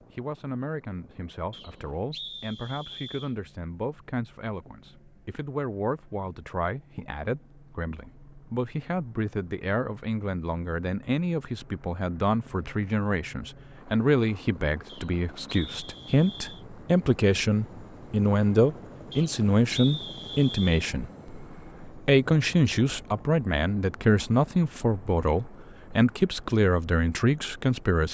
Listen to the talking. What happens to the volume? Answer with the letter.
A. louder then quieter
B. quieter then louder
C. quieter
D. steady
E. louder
E.